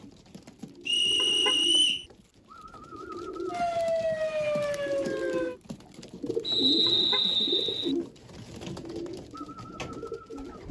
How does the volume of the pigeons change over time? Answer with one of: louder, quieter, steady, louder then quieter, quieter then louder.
louder then quieter.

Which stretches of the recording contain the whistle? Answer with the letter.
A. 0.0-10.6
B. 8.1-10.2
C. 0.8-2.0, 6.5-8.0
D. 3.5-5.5
C.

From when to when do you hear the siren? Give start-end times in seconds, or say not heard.
3.5-5.5.